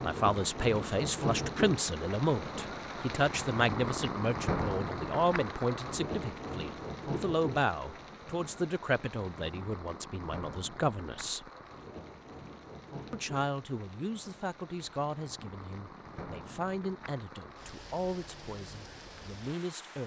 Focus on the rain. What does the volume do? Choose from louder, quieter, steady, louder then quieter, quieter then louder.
quieter.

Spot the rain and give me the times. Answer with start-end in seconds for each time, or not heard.
0.0-20.0.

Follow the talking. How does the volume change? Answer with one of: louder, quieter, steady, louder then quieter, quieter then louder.
quieter.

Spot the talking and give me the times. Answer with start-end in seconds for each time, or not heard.
0.0-11.5, 13.1-20.0.